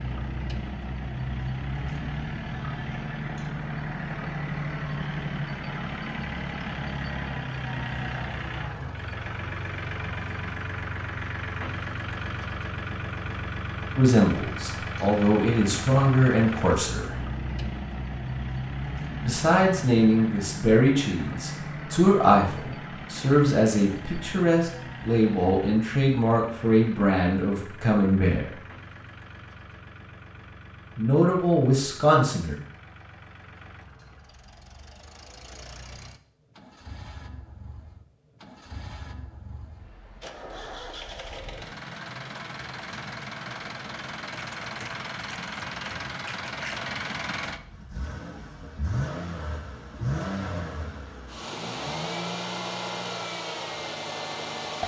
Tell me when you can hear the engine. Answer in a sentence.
The engine can be heard from 0.0 to 54.8 s.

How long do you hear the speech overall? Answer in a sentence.
You can hear the speech for 14 seconds altogether.